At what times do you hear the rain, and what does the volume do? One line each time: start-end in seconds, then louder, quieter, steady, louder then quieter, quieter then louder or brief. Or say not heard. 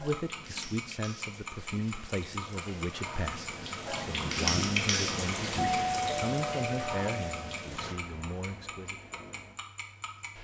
0.0-10.3 louder then quieter.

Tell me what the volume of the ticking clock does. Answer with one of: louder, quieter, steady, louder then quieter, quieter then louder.
quieter.